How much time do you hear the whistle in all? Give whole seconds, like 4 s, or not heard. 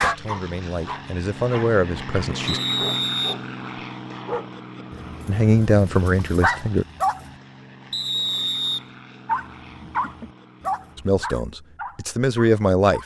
2 s.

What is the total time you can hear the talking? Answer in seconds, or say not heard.
6 s.